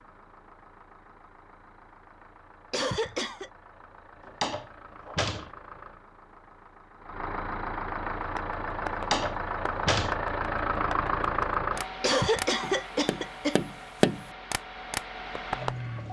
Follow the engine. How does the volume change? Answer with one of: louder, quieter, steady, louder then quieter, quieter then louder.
louder then quieter.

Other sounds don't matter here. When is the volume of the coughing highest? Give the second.
12 s.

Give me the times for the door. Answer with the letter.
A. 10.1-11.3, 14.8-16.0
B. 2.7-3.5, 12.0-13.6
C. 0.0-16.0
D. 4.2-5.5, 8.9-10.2
D.